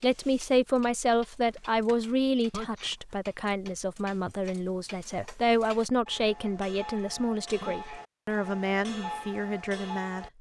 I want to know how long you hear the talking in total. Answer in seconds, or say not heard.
10 s.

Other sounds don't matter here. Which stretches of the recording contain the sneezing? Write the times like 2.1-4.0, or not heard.
2.5-3.0, 7.6-8.1.